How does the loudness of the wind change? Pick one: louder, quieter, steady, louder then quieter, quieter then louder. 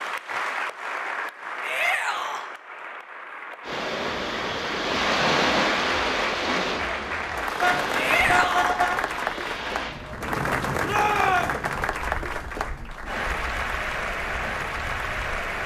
quieter.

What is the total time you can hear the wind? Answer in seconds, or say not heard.
12 s.